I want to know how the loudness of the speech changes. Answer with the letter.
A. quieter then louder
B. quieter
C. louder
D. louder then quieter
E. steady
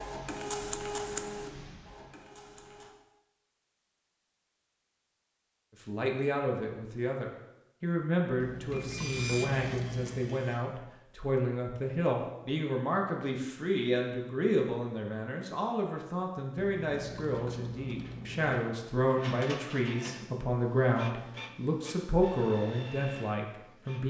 E.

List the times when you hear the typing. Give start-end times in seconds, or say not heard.
8.3-10.3, 16.6-18.6.